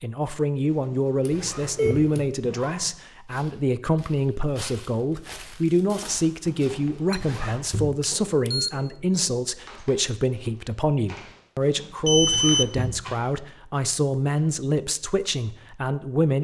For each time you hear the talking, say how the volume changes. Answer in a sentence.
The talking can be heard from 0.0 to 16.4 s, at a steady volume.